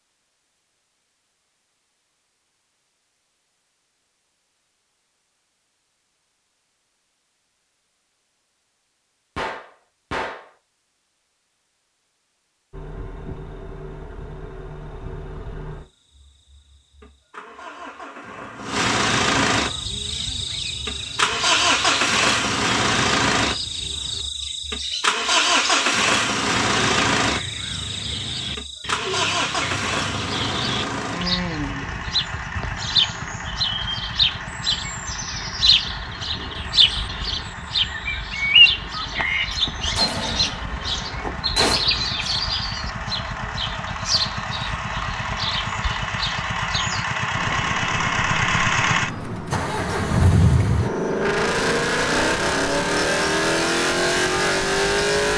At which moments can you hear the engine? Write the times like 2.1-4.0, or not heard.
12.7-55.3.